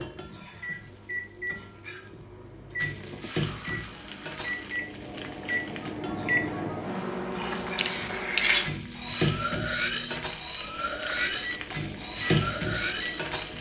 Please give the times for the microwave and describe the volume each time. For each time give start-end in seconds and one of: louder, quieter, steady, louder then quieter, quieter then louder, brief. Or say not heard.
0.0-13.5 louder then quieter.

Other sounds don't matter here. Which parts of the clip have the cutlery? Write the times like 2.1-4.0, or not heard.
7.8-13.2.